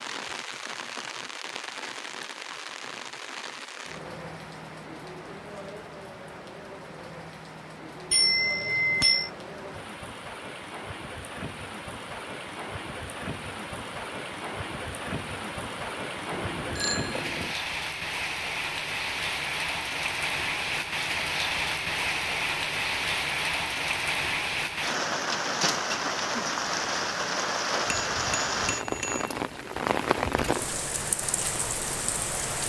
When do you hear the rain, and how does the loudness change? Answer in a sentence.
The rain can be heard from 0.0 to 32.6 s, getting louder.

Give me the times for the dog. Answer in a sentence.
You can't hear the dog here.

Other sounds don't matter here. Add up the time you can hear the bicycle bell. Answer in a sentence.
The bicycle bell can be heard for 4 seconds in total.